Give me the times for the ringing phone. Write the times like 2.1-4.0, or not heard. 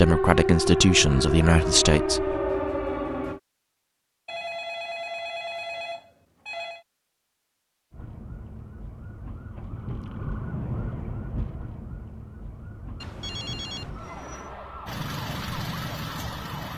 4.2-6.8, 13.0-14.6.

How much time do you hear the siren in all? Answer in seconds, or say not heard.
12 s.